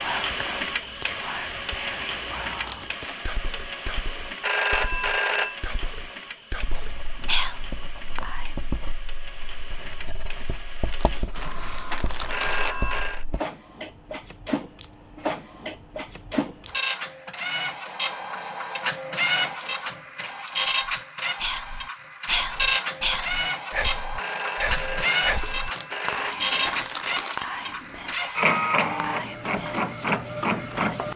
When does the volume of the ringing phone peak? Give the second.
5 s.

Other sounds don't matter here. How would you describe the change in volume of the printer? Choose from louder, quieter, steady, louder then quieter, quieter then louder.
quieter then louder.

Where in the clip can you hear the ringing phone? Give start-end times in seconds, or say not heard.
4.4-5.6, 12.3-13.2, 24.1-26.8.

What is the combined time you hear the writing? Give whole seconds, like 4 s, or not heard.
7 s.